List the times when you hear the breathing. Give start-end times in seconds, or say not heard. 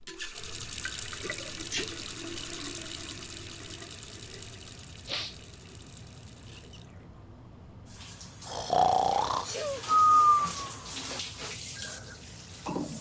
8.4-10.7.